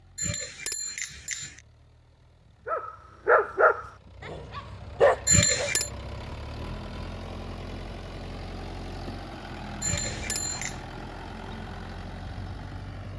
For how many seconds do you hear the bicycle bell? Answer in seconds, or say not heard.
3 s.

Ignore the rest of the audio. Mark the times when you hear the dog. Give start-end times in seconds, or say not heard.
2.6-5.7.